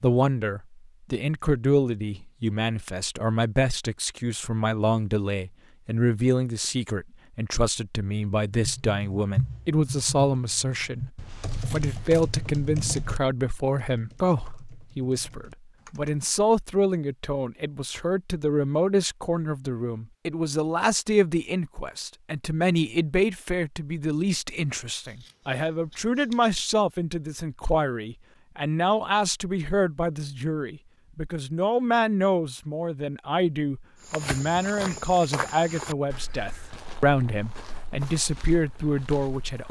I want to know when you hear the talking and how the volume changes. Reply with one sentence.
You can hear the talking from 0.0 to 39.6 s, at a steady volume.